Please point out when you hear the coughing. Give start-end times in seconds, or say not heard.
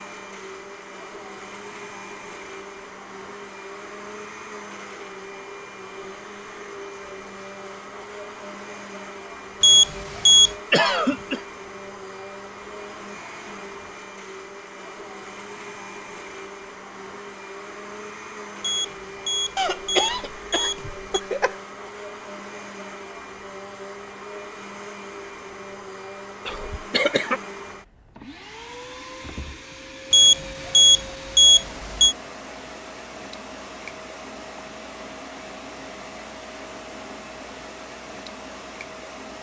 10.7-11.4, 19.6-21.6, 26.4-27.4.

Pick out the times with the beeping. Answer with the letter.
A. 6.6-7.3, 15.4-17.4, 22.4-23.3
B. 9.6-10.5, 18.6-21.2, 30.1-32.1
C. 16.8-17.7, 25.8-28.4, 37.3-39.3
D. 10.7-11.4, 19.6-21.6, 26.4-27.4
B.